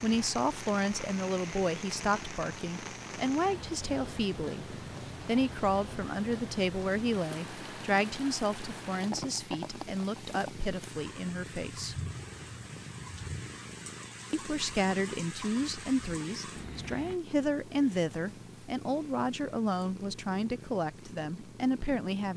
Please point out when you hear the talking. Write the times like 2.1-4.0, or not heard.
0.0-11.9, 14.3-22.3.